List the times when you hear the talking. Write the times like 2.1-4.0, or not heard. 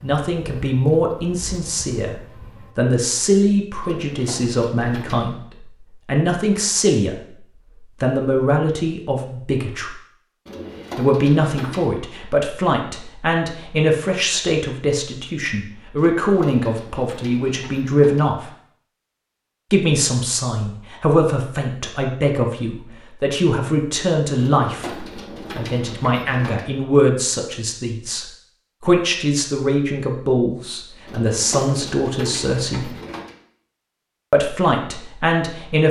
0.0-7.2, 8.0-9.9, 10.9-18.5, 19.7-32.9, 34.3-35.8.